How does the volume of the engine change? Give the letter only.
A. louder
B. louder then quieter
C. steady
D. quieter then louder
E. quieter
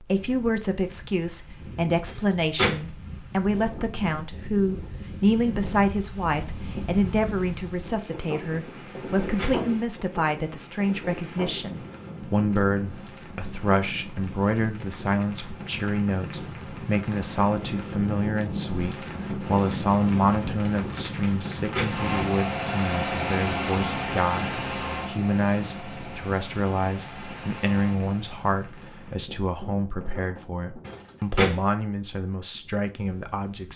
E.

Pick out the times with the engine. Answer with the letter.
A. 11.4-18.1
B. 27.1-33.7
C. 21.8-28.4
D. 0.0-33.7
C.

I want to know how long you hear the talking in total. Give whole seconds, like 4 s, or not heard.
34 s.